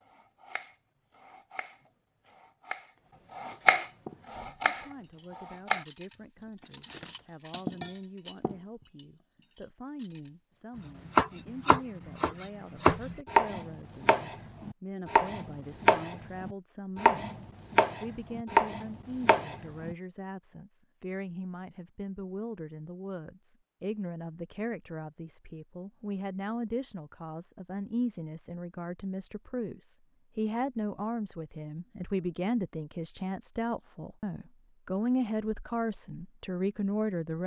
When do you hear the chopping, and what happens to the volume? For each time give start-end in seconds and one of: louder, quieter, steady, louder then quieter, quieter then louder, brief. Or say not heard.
0.1-5.8 louder then quieter
11.1-19.9 steady.